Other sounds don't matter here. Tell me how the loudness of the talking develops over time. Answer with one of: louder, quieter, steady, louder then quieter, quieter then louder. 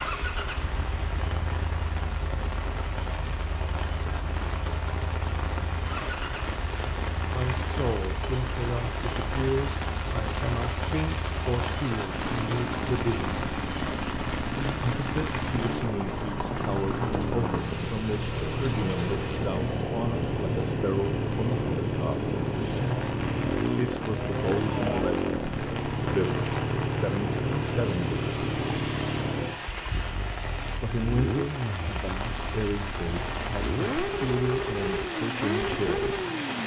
steady.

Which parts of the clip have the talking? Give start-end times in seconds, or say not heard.
7.3-13.4, 14.8-22.3, 23.8-28.1, 30.8-36.1.